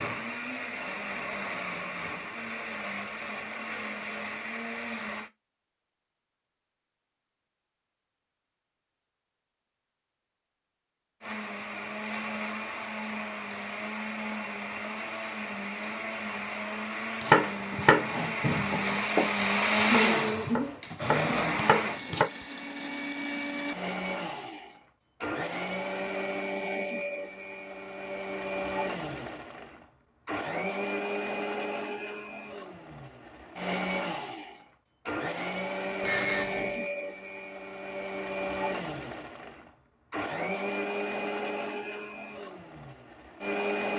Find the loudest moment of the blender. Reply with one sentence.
The volume of the blender peaks at 20 seconds.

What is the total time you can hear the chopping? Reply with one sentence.
You can hear the chopping for 5 seconds altogether.